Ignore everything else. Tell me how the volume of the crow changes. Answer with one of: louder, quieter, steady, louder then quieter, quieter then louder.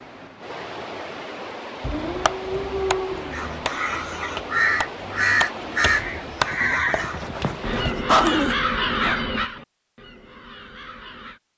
quieter.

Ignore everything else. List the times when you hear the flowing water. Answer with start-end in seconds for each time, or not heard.
0.0-8.0.